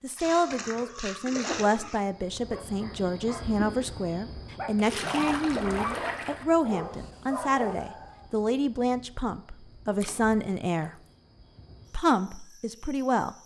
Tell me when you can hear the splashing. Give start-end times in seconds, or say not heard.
0.1-2.0, 4.8-6.5, 10.0-10.8.